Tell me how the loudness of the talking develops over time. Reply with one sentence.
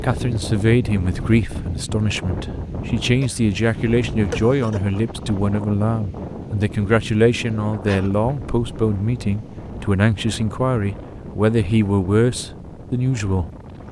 The loudness of the talking stays about the same.